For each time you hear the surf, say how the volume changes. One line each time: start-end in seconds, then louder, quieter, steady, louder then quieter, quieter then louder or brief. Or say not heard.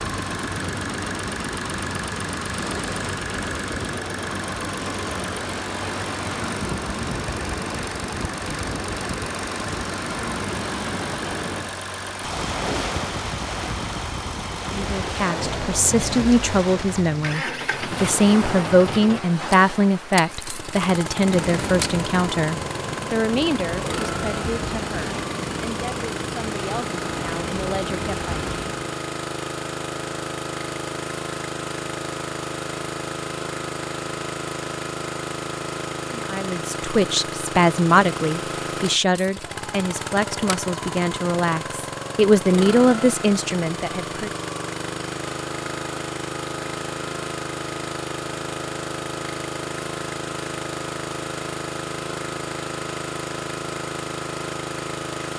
0.0-28.8 steady.